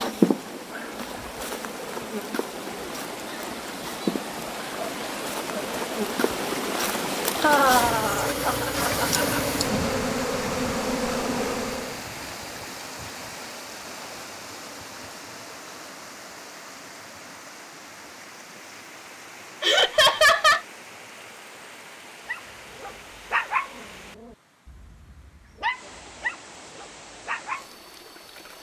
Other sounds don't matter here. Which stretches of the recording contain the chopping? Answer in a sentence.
You can't hear the chopping here.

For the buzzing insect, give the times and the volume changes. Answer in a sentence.
You can hear the buzzing insect from 0.0 to 12.0 s, getting louder.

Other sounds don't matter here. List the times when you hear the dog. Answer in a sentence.
The dog can be heard from 22.2 to 27.8 s.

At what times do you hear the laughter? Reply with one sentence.
The laughter can be heard from 7.4 to 9.4 s and from 19.6 to 20.6 s.